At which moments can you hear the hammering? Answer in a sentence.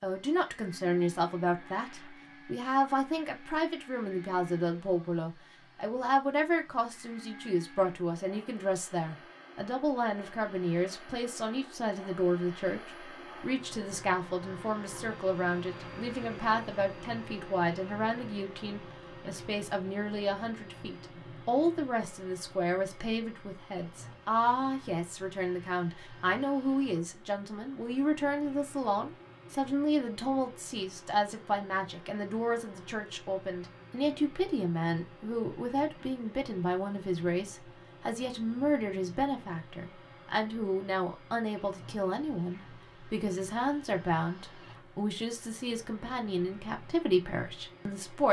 The hammering can't be heard in this clip.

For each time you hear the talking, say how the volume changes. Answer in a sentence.
You can hear the talking from 0.0 to 48.2 s, at a steady volume.